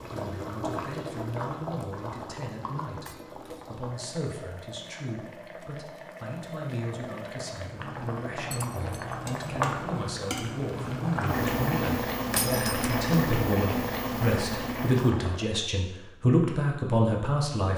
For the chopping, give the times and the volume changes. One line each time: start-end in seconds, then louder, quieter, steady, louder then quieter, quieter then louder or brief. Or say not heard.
not heard.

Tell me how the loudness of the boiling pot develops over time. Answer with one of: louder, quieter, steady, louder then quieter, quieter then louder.
quieter then louder.